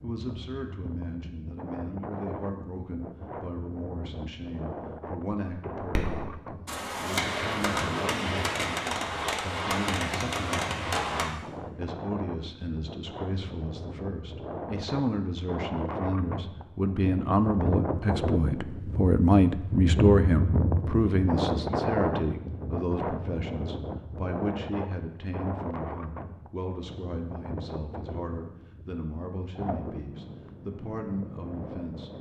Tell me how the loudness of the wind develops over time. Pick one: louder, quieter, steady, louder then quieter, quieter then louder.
louder then quieter.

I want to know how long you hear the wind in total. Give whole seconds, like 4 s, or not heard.
32 s.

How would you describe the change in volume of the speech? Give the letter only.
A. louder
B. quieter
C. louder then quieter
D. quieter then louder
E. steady
C.